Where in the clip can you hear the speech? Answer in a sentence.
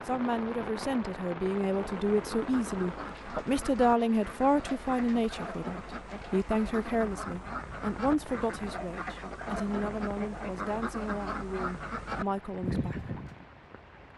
The speech can be heard from 0.1 to 13.2 s.